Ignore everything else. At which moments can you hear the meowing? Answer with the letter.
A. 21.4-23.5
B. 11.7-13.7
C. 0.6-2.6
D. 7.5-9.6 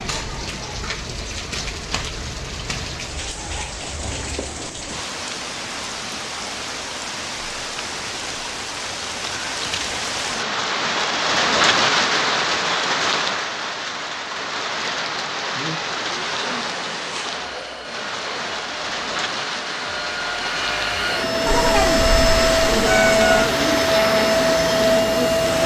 A.